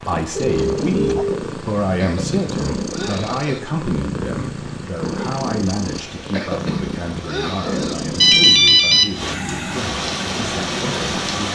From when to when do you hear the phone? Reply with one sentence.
You can hear the phone from 0.3 to 1.4 s and from 8.2 to 9.1 s.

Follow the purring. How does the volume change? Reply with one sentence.
The loudness of the purring stays about the same.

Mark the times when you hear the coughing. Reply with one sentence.
The coughing can be heard from 1.9 to 3.6 s and from 6.3 to 8.0 s.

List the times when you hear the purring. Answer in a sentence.
You can hear the purring from 0.0 to 8.6 s.